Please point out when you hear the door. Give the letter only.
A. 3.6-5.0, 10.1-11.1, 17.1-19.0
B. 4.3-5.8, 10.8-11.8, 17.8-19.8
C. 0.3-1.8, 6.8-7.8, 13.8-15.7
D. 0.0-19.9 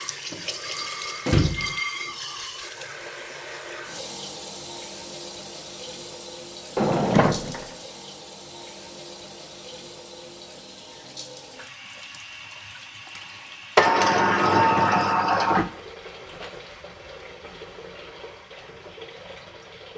C.